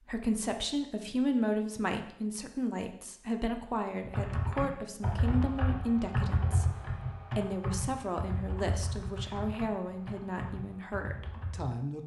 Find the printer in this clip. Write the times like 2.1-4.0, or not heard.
not heard.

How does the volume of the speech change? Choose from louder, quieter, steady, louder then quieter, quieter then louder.
quieter.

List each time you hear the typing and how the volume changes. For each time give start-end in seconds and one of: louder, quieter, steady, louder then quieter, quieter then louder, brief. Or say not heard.
4.0-11.8 quieter.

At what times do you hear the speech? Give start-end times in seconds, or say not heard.
0.1-6.7, 7.3-12.0.